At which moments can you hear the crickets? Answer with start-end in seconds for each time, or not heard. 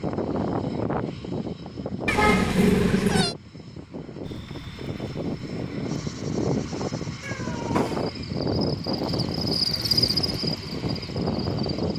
4.2-11.9.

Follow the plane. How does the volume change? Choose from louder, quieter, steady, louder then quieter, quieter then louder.
quieter then louder.